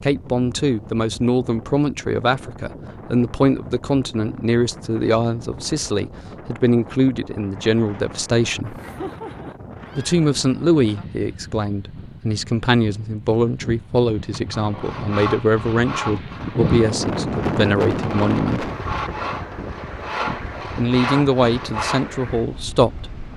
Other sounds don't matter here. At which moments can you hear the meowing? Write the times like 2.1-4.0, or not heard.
8.6-10.2.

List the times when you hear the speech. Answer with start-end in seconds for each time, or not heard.
0.0-8.8, 9.9-18.6, 20.2-23.1.